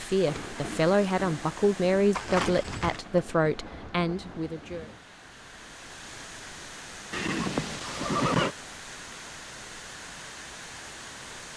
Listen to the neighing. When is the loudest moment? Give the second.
8 s.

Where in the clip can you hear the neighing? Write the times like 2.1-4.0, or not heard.
2.1-3.0, 7.1-8.6.